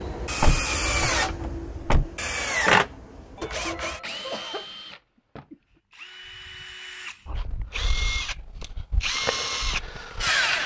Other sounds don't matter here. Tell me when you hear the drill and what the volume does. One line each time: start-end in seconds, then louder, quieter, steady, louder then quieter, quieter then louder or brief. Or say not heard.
0.0-10.6 quieter then louder.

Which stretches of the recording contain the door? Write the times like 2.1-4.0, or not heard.
0.4-2.1.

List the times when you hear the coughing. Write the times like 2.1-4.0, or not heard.
3.4-4.7.